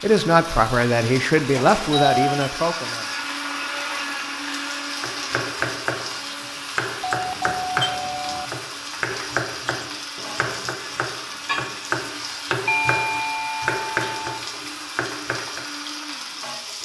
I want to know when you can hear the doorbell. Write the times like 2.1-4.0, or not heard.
1.6-2.5, 7.0-8.5, 12.7-14.4.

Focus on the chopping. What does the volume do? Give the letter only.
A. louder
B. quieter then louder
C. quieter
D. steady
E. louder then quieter
D.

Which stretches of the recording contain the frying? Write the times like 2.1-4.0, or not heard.
0.0-16.8.